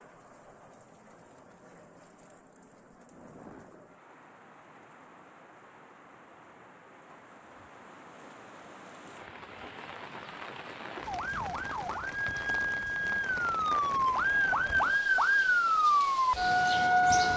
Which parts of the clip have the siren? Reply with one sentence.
The siren can be heard from 11.1 to 17.3 s.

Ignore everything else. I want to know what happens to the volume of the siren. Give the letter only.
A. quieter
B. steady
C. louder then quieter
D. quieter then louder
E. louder
E.